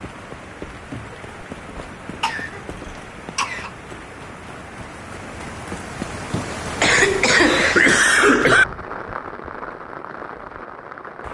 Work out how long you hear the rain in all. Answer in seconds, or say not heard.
11 s.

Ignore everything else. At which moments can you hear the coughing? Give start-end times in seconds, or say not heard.
2.2-3.7, 6.8-8.7.